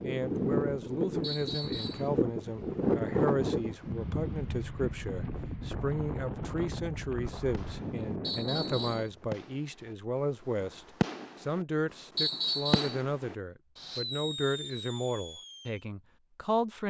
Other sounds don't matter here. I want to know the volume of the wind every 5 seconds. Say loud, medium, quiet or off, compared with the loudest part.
loud, medium, off, off.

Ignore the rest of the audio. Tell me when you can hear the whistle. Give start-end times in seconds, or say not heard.
1.2-2.0, 8.2-9.1, 12.2-13.0.